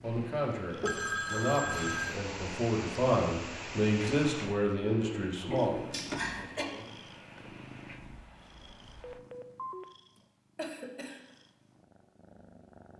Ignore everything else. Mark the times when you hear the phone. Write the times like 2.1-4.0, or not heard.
0.8-2.1, 4.8-6.2, 9.0-9.8.